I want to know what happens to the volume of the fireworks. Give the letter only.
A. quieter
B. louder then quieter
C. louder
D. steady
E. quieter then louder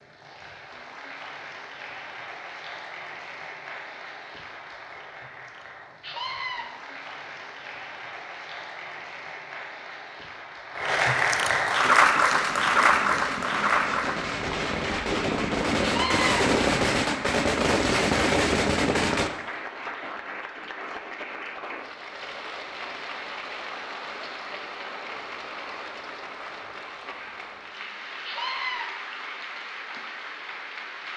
C.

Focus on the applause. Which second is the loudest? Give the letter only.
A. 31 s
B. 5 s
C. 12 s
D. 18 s
C.